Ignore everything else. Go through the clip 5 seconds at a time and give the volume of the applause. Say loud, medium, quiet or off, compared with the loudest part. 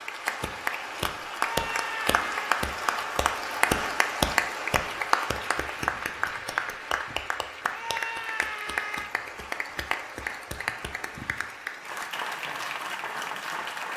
loud, loud, medium.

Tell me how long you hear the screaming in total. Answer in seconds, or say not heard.
2 s.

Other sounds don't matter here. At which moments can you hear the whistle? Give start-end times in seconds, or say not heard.
not heard.